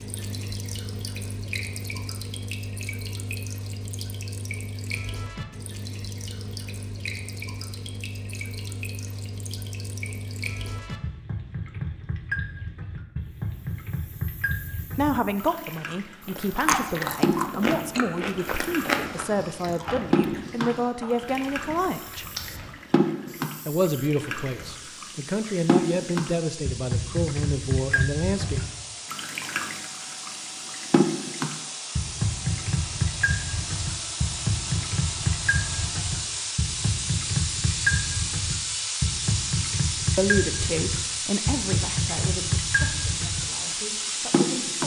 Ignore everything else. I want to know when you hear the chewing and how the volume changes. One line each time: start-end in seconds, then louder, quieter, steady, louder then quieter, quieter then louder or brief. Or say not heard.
16.2-22.8 quieter.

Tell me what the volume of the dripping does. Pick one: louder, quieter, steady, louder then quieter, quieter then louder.
louder.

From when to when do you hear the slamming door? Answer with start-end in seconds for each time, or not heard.
not heard.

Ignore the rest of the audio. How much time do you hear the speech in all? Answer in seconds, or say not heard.
17 s.